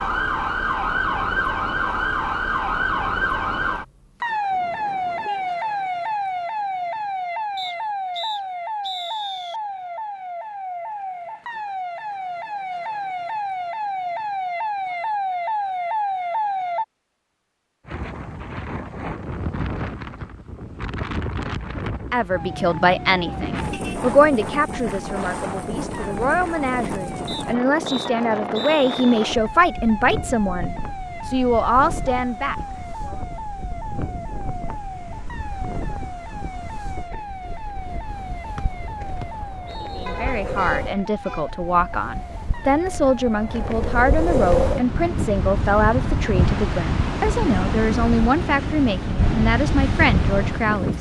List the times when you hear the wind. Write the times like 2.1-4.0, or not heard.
17.9-50.9.